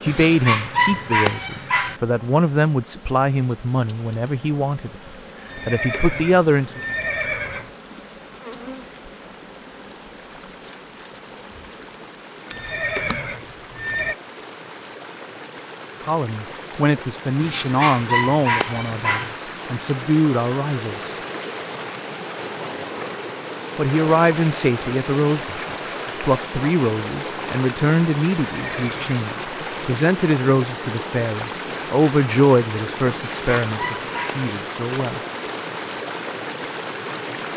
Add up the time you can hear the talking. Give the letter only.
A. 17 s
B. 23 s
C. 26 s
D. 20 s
B.